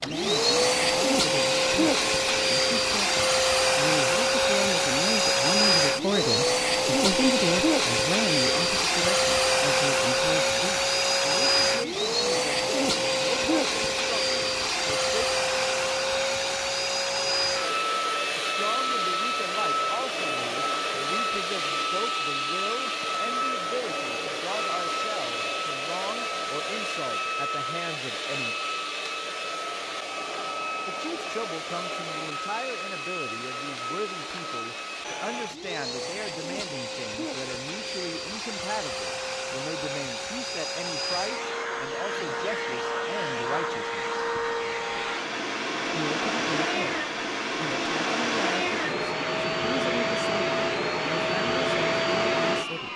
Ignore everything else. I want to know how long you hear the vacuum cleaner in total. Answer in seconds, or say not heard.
53 s.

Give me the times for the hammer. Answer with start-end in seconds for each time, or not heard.
not heard.